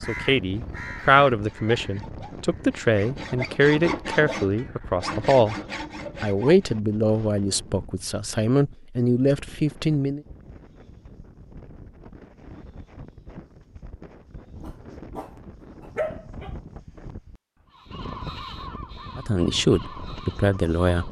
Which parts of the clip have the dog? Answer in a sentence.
The dog can be heard from 14.6 to 16.6 s.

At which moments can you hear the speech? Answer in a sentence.
The speech can be heard from 0.1 to 5.5 s, from 6.2 to 10.2 s and from 19.1 to 21.0 s.